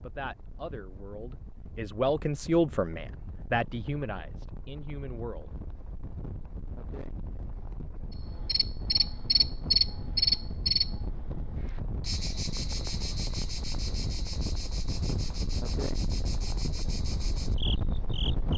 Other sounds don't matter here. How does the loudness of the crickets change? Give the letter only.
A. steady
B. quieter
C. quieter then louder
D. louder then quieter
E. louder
B.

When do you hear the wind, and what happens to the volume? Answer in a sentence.
You can hear the wind from 0.0 to 18.5 s, getting louder.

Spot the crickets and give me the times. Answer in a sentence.
The crickets can be heard from 8.4 to 18.5 s.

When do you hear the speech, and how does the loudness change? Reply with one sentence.
You can hear the speech from 0.0 to 5.5 s, getting louder then quieter.